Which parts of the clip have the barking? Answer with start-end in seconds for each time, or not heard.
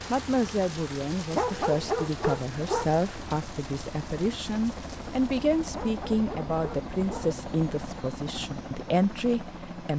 1.3-2.9, 5.7-7.3.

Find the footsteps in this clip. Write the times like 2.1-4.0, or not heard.
not heard.